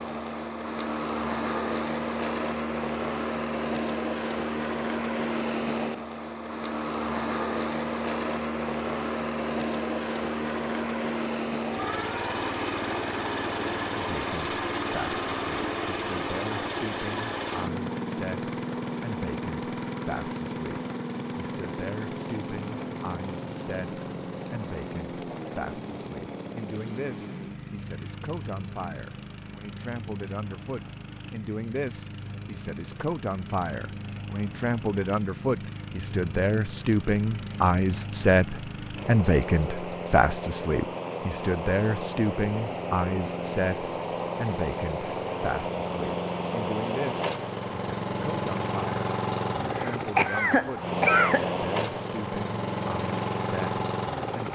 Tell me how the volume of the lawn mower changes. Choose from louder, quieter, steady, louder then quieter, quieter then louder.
quieter then louder.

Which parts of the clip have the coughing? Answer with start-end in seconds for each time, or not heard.
49.7-51.5.